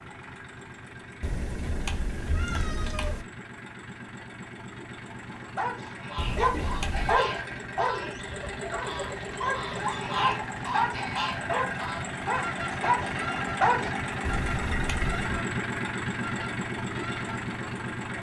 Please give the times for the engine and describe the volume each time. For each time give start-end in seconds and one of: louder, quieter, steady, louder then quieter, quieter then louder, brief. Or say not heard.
0.0-18.1 louder.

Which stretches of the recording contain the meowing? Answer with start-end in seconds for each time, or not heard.
1.2-3.2, 6.2-7.2, 14.2-15.3.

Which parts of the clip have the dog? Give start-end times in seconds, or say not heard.
5.3-13.9.